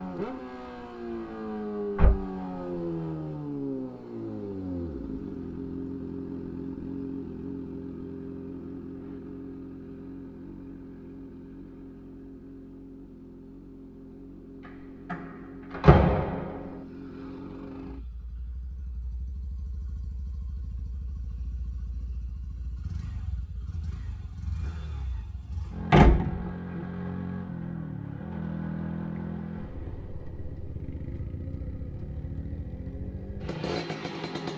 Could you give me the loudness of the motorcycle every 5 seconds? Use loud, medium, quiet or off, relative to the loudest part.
loud, loud, medium, medium, quiet, loud, loud.